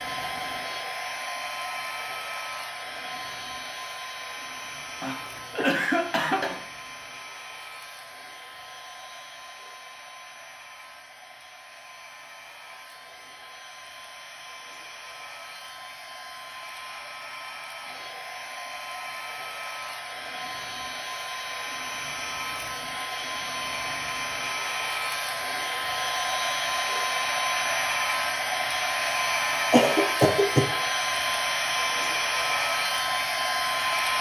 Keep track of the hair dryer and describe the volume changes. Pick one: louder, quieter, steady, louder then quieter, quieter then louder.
quieter then louder.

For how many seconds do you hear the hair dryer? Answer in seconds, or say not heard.
34 s.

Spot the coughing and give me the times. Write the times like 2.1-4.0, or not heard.
5.0-6.6, 29.7-30.6.